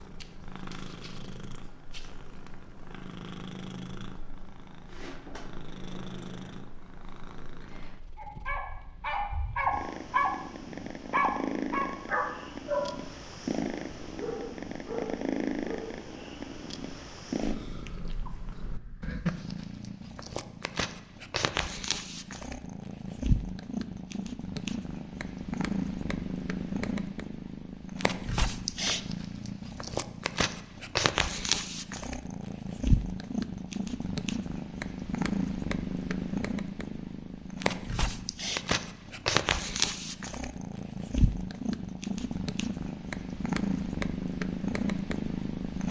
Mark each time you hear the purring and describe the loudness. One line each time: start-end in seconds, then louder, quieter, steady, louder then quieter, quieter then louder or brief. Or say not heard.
0.0-45.8 louder.